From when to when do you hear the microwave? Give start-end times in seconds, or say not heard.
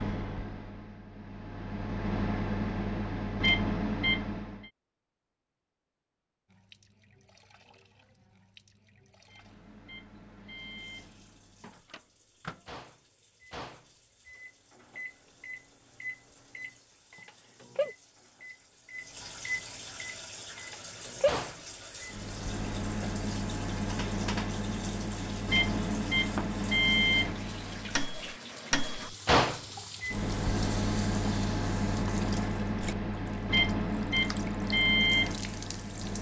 0.0-4.7, 9.2-36.1.